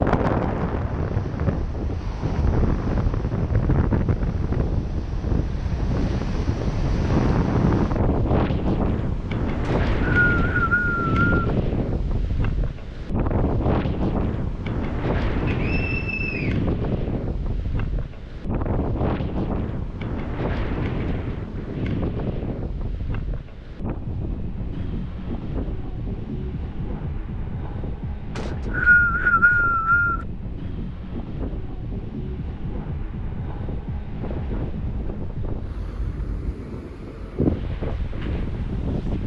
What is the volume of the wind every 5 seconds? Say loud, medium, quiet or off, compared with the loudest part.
loud, loud, loud, loud, medium, medium, medium, medium.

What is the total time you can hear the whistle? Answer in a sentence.
The whistle can be heard for 5 seconds in total.